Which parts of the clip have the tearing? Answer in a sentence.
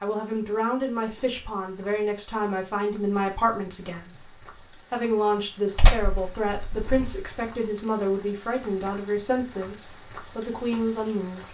You can hear the tearing from 5.8 to 7.2 s.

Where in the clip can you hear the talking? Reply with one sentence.
You can hear the talking from 0.0 to 4.3 s and from 4.9 to 11.4 s.